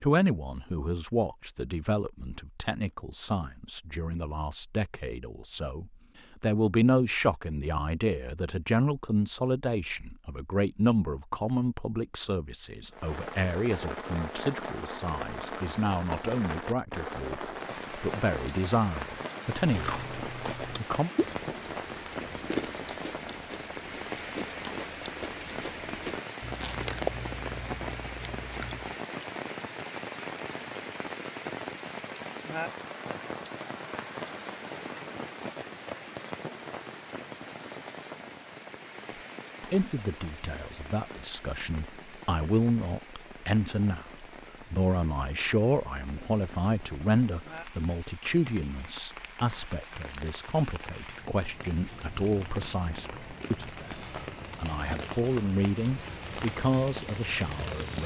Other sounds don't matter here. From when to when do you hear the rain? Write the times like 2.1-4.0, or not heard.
12.9-58.0.